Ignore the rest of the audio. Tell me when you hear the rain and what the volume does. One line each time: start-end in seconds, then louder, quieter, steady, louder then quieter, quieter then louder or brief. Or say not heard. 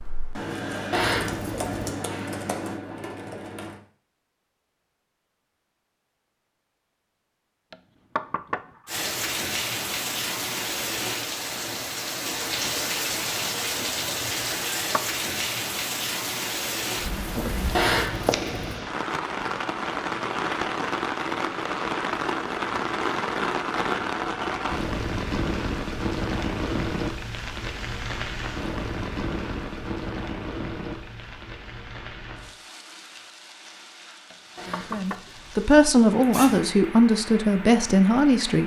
8.8-38.6 quieter.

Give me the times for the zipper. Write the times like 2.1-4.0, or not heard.
0.9-1.9, 17.7-18.8, 34.5-36.6.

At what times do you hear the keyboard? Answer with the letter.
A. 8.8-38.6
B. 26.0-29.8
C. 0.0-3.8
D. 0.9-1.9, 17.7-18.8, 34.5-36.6
C.